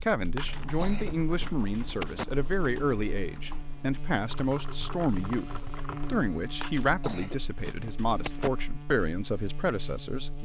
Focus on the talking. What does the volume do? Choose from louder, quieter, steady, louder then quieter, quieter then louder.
steady.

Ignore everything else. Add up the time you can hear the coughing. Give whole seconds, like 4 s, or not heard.
4 s.